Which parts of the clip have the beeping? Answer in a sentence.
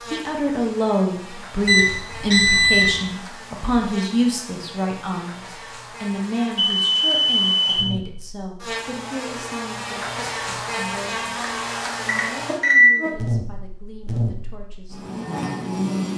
You can hear the beeping from 1.6 to 3.0 s, from 6.5 to 7.8 s and from 12.1 to 12.9 s.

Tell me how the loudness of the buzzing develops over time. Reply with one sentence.
The loudness of the buzzing goes up.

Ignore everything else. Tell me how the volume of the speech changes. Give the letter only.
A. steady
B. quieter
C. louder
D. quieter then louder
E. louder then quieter
B.